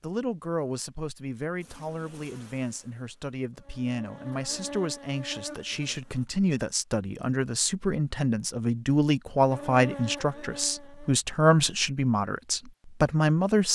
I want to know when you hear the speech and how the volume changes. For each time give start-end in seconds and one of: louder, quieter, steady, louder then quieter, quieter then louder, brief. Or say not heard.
0.0-13.7 louder.